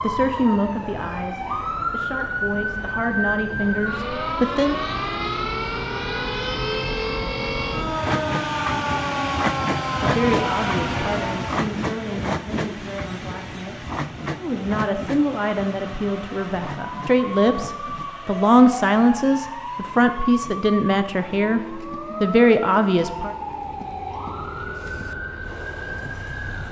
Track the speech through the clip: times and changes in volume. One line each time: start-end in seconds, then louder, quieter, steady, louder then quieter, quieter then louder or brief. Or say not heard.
0.0-4.8 quieter then louder
10.0-23.4 louder.